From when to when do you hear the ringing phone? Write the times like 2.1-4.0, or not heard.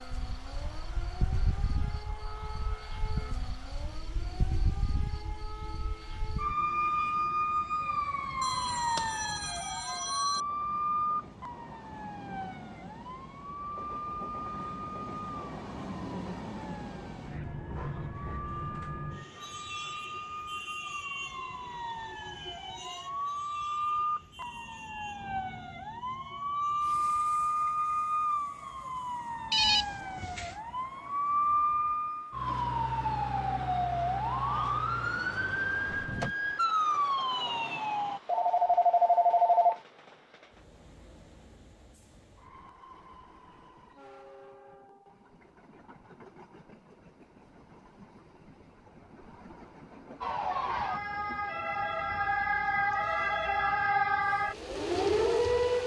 8.4-10.4, 29.5-30.6, 38.2-39.8.